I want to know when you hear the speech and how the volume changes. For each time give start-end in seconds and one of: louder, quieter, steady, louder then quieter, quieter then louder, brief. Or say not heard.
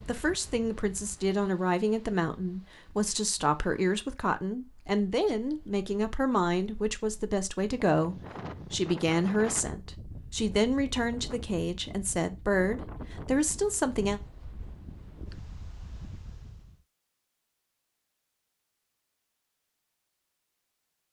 0.0-14.2 steady.